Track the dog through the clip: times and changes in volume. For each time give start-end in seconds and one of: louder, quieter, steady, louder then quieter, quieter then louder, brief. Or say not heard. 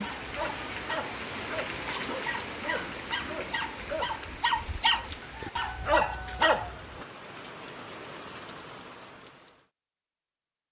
0.0-7.0 louder.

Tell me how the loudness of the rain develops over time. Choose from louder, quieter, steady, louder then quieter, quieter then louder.
quieter.